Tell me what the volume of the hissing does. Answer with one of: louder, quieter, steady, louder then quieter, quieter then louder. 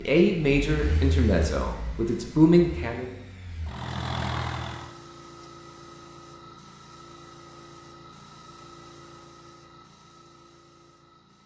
quieter.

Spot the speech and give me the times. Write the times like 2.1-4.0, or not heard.
0.0-3.1.